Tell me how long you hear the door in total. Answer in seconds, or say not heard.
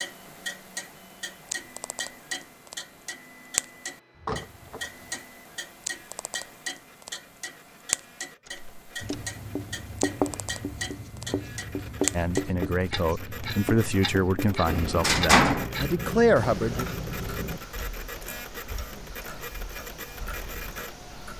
3 s.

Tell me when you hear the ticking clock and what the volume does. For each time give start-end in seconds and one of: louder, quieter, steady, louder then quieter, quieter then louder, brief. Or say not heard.
0.0-21.3 quieter.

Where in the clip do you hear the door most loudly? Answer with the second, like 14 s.
15 s.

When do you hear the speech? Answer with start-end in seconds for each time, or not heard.
12.1-16.9.